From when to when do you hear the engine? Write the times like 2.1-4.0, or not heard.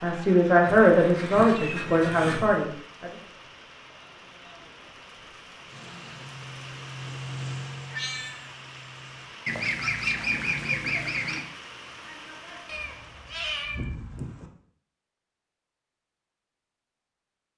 5.7-9.3.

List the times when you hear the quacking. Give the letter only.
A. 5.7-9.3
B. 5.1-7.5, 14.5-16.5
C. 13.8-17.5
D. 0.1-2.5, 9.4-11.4
D.